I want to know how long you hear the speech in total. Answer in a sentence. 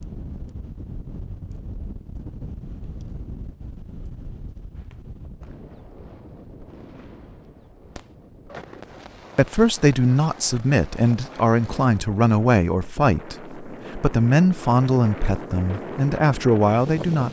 You can hear the speech for 8 seconds altogether.